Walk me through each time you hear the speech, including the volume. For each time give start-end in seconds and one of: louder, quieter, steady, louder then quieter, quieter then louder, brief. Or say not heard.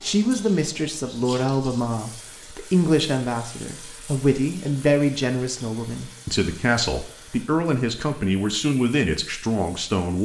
0.0-10.1 steady.